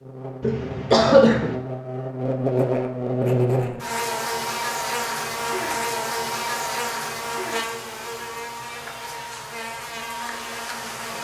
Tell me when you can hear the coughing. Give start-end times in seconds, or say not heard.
0.4-1.6.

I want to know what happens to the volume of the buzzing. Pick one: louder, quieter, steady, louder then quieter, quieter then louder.
louder then quieter.